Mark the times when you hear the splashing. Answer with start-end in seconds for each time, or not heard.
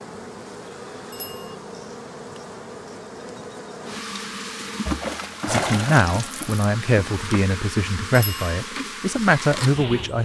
4.8-6.6.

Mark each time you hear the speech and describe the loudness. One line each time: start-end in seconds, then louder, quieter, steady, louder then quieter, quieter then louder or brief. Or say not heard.
5.5-10.2 quieter then louder.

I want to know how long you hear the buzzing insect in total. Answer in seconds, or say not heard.
10 s.